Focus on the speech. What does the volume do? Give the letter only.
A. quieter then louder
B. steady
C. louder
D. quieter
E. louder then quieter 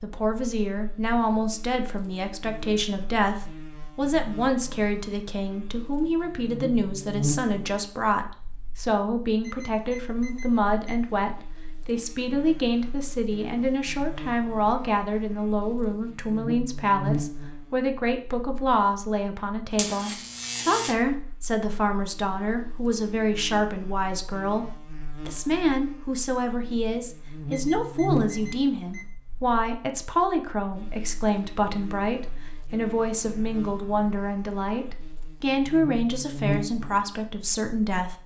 B.